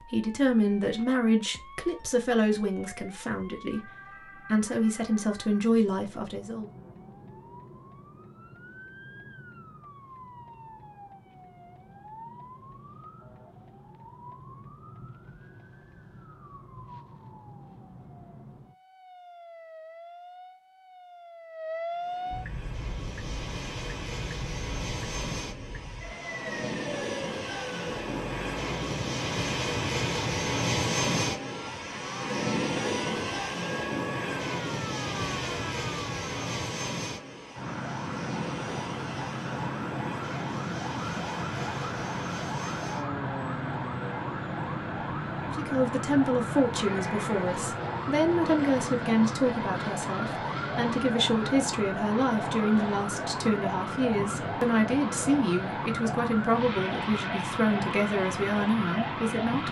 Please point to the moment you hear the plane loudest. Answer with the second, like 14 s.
31 s.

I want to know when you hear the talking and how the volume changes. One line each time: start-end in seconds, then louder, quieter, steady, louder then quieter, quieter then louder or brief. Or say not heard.
0.0-6.7 quieter then louder
45.4-59.6 steady.